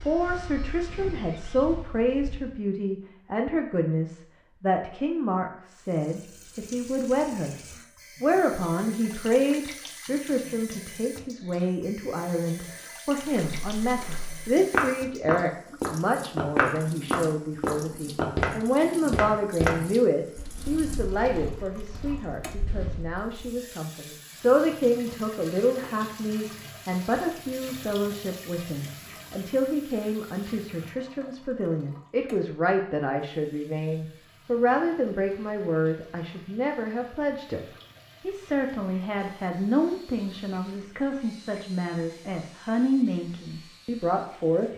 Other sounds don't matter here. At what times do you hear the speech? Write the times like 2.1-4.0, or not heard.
0.0-7.6, 8.2-37.6, 38.2-44.7.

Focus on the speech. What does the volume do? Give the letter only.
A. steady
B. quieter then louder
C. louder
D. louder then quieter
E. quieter
A.